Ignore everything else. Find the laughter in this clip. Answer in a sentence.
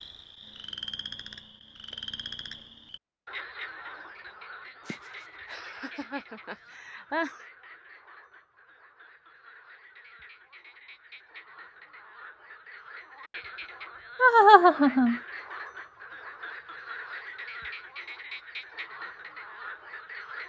You can hear the laughter from 4.8 to 7.3 s and from 14.2 to 15.2 s.